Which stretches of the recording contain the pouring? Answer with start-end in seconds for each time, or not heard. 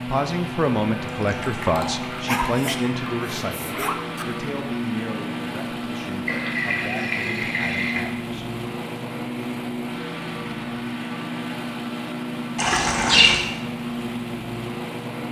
1.1-2.9, 6.2-8.0, 12.6-13.4.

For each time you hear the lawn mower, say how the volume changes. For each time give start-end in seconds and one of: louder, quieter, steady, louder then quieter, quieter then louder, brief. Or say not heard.
0.0-15.2 steady.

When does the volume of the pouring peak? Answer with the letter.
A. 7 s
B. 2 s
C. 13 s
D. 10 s
C.